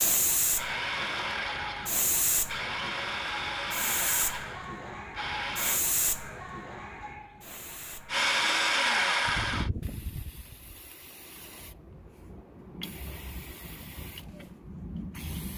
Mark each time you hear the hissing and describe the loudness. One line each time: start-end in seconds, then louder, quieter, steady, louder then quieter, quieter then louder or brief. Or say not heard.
0.0-15.5 quieter.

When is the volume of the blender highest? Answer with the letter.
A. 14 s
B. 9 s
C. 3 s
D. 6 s
B.